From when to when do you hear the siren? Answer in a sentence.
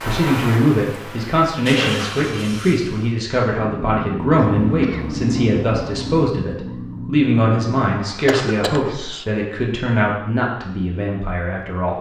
You can hear the siren from 3.5 to 8.9 s.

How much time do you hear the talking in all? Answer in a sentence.
The talking can be heard for 12 seconds in total.